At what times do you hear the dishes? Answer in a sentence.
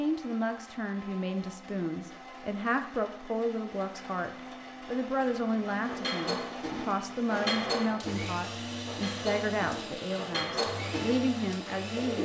The dishes can be heard from 5.8 to 12.2 s.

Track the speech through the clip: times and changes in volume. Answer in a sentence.
You can hear the speech from 0.0 to 12.2 s, at a steady volume.